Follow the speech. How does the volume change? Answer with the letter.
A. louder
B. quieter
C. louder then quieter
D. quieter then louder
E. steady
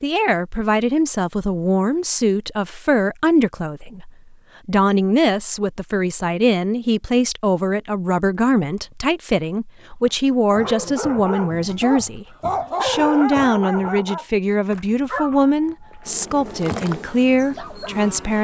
E.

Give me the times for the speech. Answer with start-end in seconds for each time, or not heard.
0.0-18.4.